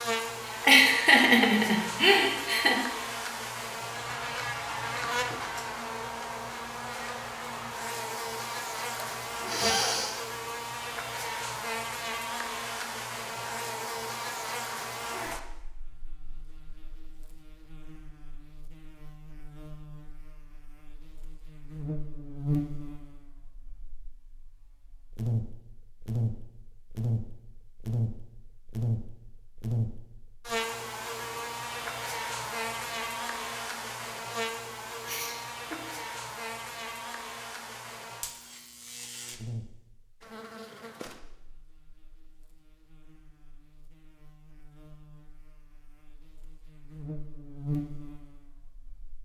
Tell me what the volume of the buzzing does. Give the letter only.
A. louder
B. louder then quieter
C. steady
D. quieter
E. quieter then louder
D.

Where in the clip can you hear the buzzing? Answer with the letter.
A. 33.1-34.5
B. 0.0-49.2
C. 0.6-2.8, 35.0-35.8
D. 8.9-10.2
B.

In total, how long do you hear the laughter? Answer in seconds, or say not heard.
3 s.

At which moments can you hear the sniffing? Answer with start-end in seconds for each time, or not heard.
8.9-10.2.